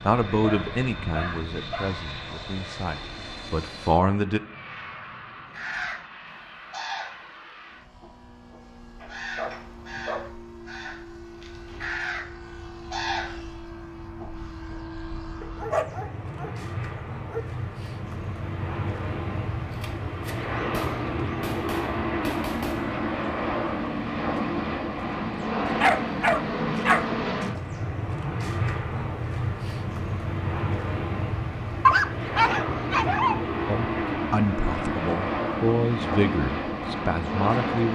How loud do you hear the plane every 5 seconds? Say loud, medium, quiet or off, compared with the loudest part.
medium, quiet, quiet, medium, loud, loud, loud, loud.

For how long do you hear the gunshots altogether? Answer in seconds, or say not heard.
3 s.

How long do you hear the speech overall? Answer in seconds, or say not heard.
9 s.